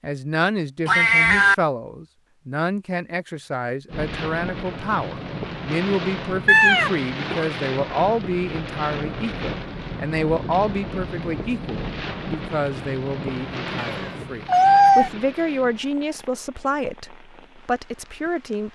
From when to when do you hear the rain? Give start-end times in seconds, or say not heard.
3.9-18.7.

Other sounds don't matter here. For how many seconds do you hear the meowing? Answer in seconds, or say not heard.
3 s.